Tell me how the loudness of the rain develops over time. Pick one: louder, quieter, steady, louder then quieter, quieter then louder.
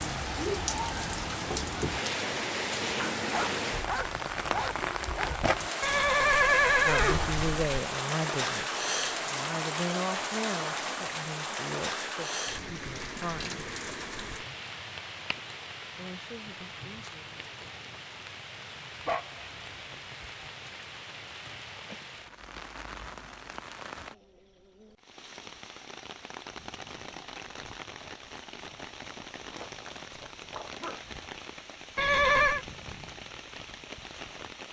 quieter.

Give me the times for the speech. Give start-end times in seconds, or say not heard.
6.8-13.7, 15.9-17.6.